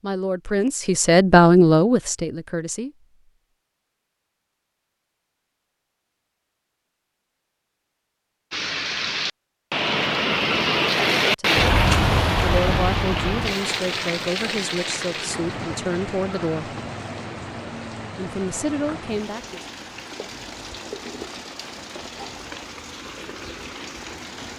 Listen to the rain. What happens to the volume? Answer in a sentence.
The loudness of the rain goes down.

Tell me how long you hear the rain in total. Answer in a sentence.
The rain can be heard for 16 seconds in total.